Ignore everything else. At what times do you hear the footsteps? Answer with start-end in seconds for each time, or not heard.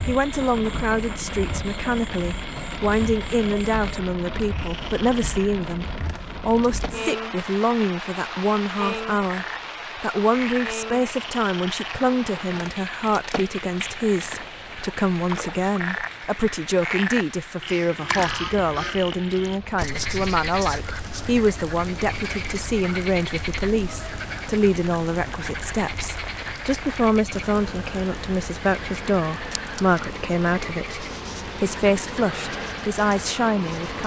not heard.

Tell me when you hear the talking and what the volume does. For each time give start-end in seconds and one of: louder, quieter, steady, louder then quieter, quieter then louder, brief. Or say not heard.
0.1-34.0 steady.